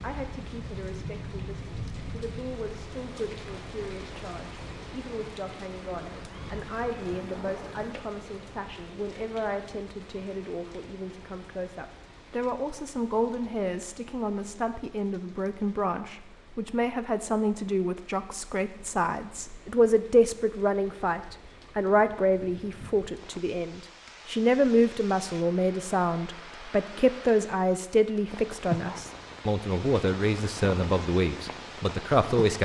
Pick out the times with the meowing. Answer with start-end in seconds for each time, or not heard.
6.0-8.0.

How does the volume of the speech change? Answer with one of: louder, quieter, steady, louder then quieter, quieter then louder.
louder.